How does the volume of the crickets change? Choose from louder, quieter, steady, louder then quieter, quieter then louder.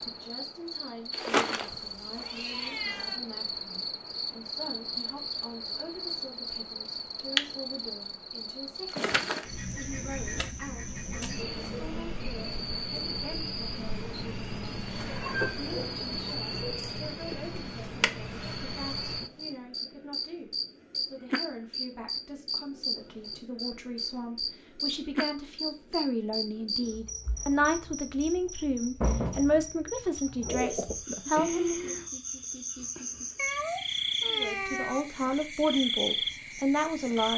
steady.